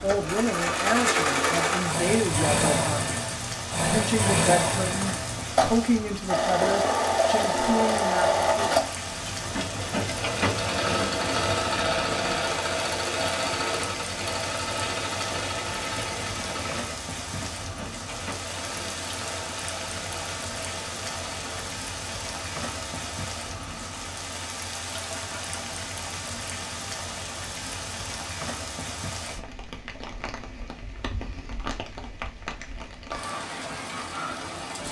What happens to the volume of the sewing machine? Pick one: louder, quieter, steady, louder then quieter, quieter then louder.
quieter.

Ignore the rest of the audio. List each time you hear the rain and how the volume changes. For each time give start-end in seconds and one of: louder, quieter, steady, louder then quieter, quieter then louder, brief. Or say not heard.
0.0-34.8 steady.